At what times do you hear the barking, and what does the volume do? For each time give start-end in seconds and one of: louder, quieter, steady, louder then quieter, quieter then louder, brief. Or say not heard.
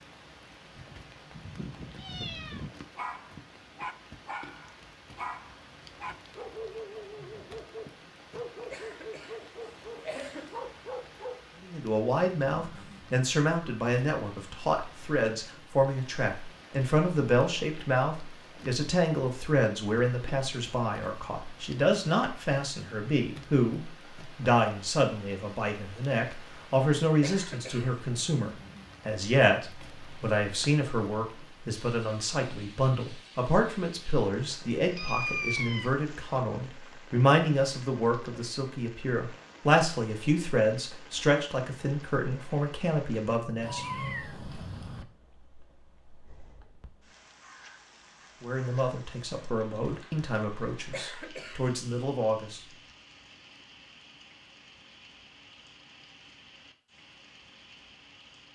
3.0-11.4 steady.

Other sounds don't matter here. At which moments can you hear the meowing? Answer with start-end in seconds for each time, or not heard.
0.8-2.7, 34.9-36.0, 43.6-45.0.